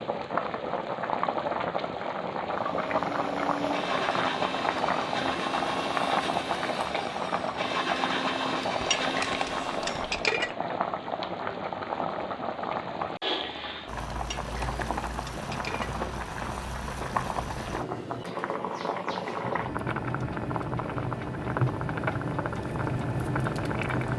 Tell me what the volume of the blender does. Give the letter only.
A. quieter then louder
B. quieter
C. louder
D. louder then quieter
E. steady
E.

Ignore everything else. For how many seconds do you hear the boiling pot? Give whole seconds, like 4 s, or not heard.
24 s.